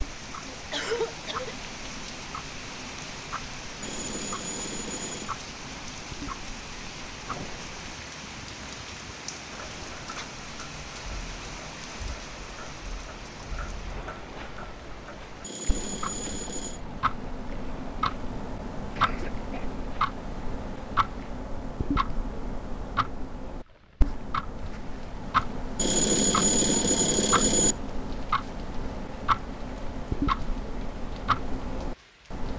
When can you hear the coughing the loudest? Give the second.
1 s.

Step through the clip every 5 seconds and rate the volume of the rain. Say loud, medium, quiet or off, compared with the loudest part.
loud, loud, loud, medium, quiet, quiet, quiet.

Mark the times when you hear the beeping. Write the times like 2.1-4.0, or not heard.
3.8-5.3, 15.4-16.8, 25.8-27.8.